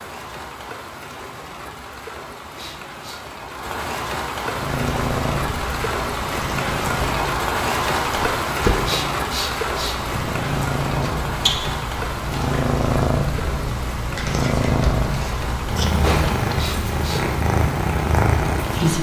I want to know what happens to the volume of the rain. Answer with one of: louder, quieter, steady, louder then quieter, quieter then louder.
louder then quieter.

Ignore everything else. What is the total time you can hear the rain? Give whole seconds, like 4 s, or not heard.
19 s.